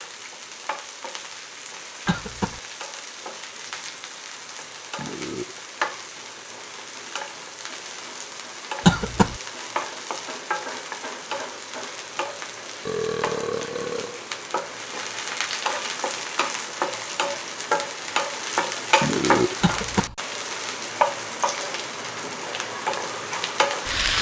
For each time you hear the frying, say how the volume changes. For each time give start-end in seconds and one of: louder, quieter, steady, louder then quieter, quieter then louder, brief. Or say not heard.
0.0-24.1 louder.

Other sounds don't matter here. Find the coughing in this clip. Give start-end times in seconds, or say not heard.
2.0-2.6, 8.8-9.4, 19.6-20.1.